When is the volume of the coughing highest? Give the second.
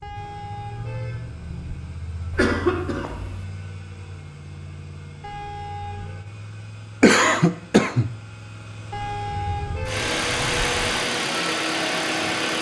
7 s.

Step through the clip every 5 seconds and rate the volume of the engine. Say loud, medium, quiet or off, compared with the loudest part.
quiet, quiet, loud.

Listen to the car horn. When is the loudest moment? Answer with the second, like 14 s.
9 s.